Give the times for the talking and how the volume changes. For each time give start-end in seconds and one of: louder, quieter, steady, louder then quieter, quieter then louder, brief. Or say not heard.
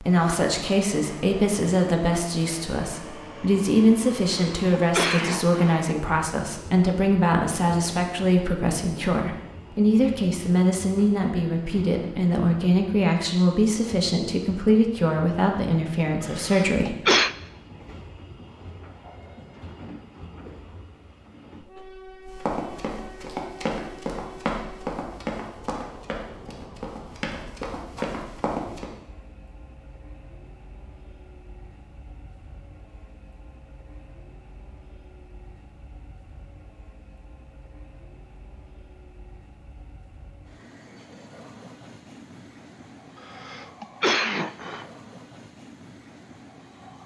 0.0-17.0 steady.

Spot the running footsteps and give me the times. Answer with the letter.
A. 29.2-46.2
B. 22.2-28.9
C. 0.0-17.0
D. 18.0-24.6
B.